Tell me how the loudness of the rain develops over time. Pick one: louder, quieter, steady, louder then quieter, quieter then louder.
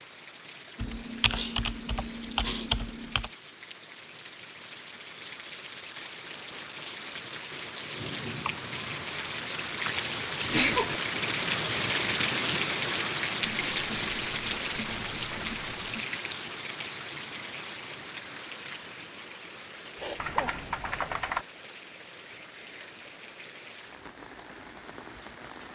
louder then quieter.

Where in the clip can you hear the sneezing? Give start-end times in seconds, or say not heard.
0.8-2.7, 10.4-10.9, 19.9-20.6.